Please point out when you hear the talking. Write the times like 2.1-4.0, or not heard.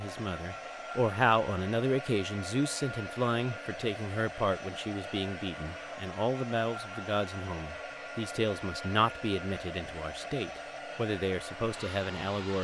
0.0-12.6.